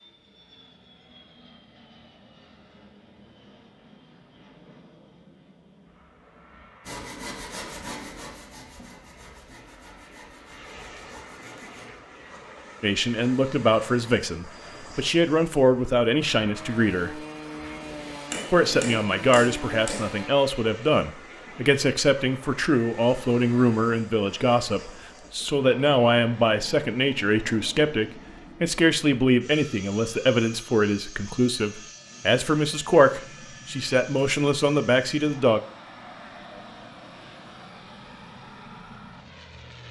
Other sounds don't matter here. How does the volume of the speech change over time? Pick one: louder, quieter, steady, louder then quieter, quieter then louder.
steady.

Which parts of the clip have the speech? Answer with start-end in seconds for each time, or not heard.
12.8-17.2, 18.5-35.6.